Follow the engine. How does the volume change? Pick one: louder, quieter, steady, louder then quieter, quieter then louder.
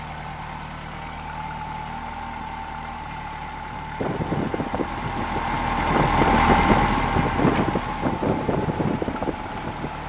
louder then quieter.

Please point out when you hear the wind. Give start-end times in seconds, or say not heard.
4.0-10.0.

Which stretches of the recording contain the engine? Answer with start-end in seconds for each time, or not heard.
0.0-10.0.